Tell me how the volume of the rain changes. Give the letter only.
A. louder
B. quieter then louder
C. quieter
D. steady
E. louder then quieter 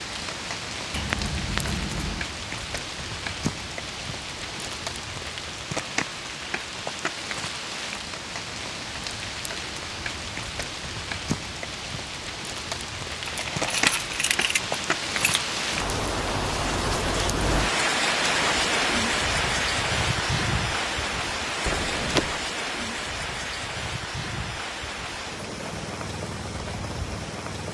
E.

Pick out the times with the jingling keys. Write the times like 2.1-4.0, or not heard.
0.9-2.3, 13.2-15.5, 21.6-22.4.